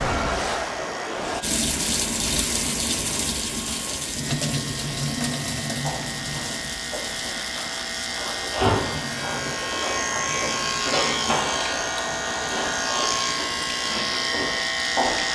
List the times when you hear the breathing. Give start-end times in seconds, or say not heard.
not heard.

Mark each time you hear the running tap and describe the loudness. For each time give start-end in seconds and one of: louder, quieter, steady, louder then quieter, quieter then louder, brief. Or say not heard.
0.0-15.2 quieter.